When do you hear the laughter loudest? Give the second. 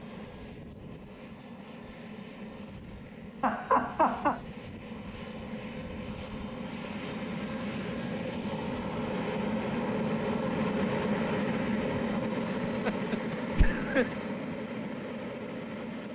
4 s.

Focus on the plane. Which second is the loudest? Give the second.
11 s.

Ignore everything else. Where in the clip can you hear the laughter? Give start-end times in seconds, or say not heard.
3.4-4.4, 12.8-14.1.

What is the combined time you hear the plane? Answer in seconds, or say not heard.
16 s.